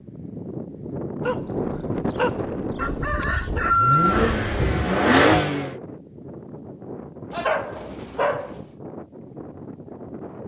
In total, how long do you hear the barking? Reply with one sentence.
The barking can be heard for 4 seconds in total.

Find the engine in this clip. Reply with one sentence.
The engine can be heard from 3.6 to 5.8 s.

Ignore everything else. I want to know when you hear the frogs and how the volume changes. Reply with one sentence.
The frogs can't be heard in this clip.